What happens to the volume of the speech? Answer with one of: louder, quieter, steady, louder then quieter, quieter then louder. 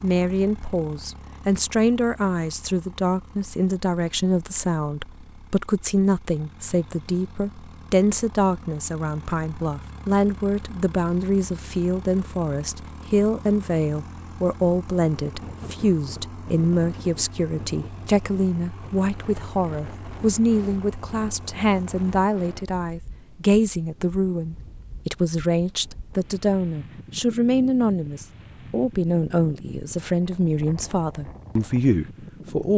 steady.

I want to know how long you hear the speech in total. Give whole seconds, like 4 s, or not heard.
33 s.